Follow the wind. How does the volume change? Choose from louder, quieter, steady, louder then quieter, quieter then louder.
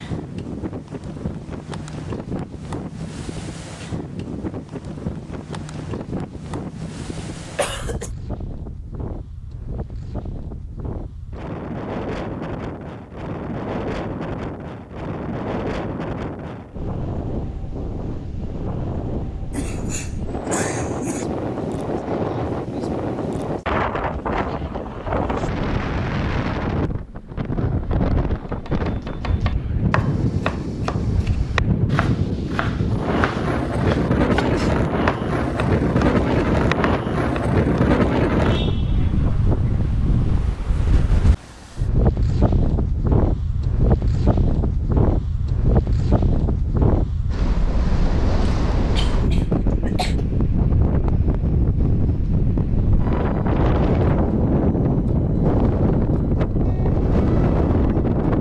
louder.